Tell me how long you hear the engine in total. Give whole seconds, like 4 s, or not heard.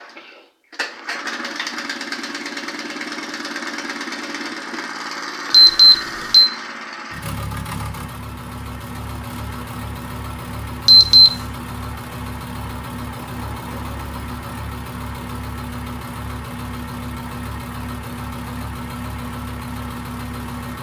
21 s.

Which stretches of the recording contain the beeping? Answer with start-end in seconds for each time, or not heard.
5.5-6.5, 10.8-11.3.